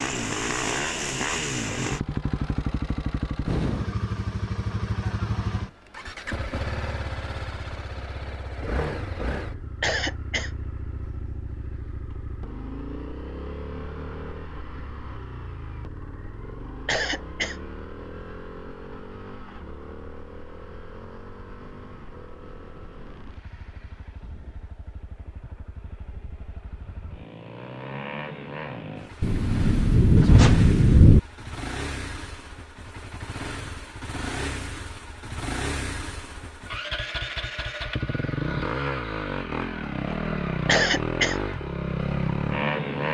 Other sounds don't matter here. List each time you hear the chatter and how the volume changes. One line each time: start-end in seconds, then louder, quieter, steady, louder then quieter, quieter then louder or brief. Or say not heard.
not heard.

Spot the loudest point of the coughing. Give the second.
41 s.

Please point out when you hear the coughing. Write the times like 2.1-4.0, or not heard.
9.8-10.5, 16.9-17.6, 40.6-41.4.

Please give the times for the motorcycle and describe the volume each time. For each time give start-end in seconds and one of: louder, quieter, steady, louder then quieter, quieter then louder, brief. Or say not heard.
0.0-43.1 quieter then louder.